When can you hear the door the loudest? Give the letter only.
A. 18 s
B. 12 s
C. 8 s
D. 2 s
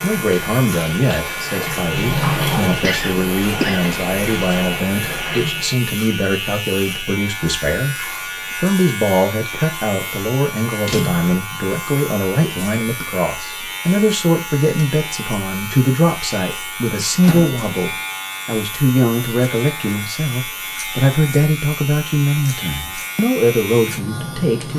D.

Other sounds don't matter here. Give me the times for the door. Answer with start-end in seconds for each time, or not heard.
1.6-2.9, 10.8-11.3, 17.2-17.6.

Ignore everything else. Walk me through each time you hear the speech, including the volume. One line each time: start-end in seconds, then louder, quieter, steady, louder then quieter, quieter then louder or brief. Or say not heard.
0.0-24.7 steady.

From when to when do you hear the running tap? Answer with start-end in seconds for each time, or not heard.
0.0-5.8.